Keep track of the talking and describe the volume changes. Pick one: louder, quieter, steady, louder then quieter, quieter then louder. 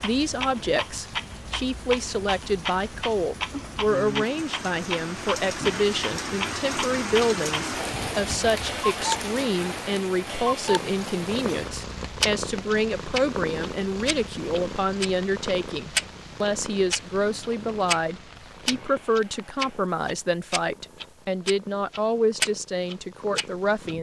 steady.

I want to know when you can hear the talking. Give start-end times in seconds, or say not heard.
0.0-23.9.